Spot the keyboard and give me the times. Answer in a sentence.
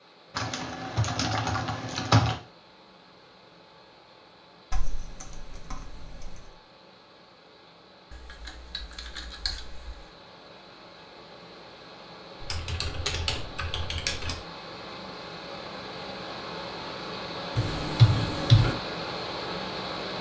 The keyboard can be heard from 0.3 to 2.4 s, from 4.7 to 6.5 s, from 8.1 to 10.1 s, from 12.4 to 14.3 s and from 17.6 to 18.8 s.